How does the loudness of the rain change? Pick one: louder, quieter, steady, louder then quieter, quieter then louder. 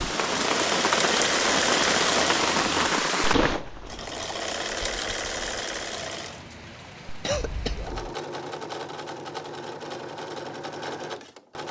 quieter.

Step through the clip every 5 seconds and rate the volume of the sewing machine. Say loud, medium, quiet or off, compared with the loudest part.
loud, medium, medium.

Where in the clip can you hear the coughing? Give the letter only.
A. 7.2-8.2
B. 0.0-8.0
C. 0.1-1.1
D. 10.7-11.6
A.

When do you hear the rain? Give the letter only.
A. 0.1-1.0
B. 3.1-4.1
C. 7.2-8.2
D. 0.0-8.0
D.